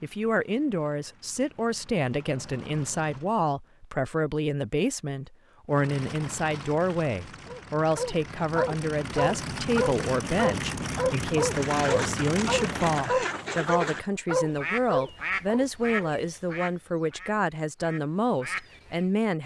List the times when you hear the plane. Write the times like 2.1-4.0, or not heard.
0.0-3.4, 5.7-13.2.